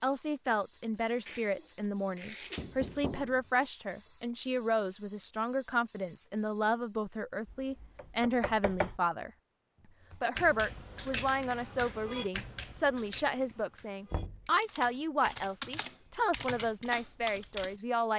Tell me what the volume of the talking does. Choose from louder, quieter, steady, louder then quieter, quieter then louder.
steady.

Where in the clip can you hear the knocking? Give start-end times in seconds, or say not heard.
2.5-3.5, 7.5-9.0, 14.1-14.5.